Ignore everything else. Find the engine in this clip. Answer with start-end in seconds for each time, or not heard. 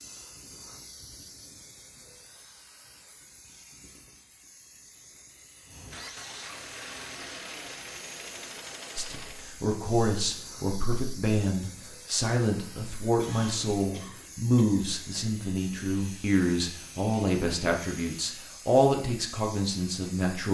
5.6-9.6.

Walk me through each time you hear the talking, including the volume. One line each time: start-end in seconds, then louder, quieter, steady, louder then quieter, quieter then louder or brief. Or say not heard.
8.9-20.5 steady.